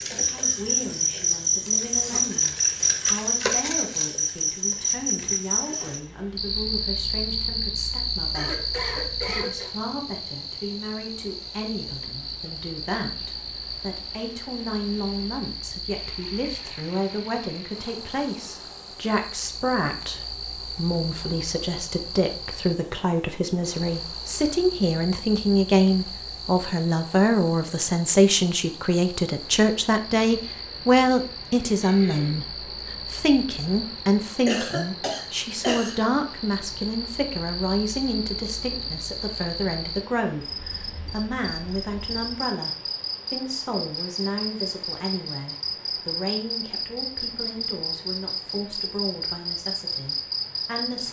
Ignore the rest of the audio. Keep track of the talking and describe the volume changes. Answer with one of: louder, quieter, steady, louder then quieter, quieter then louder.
louder then quieter.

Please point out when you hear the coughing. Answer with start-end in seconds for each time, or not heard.
8.3-9.8, 31.8-32.5, 34.5-36.0.